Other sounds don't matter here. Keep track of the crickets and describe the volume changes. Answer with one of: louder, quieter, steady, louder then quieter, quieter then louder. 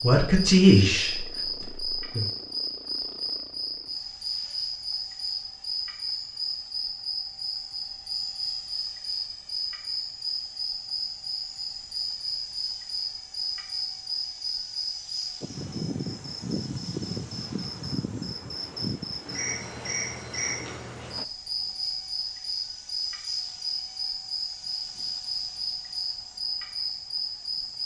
steady.